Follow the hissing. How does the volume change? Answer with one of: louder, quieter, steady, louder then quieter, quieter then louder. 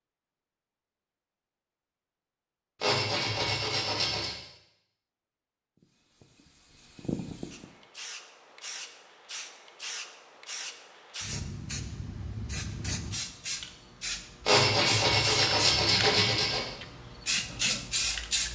louder.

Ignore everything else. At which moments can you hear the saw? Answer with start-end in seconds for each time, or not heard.
2.8-4.3, 14.4-16.6.